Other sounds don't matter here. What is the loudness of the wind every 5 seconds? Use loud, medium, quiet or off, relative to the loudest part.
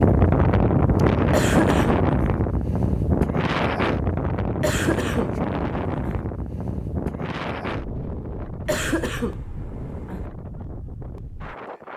loud, medium, quiet.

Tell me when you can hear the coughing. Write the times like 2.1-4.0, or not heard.
1.3-2.0, 4.6-6.2, 8.7-10.2.